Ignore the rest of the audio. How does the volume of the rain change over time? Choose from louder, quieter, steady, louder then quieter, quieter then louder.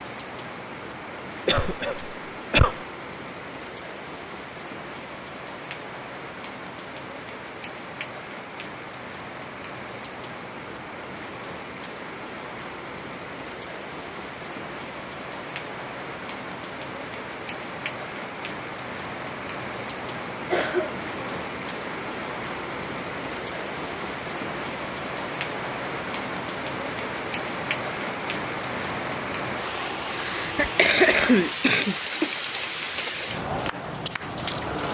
louder.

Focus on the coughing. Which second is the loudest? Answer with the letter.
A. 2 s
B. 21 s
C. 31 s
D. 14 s
C.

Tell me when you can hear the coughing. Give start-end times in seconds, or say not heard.
1.4-2.8, 20.5-21.4, 30.1-32.3.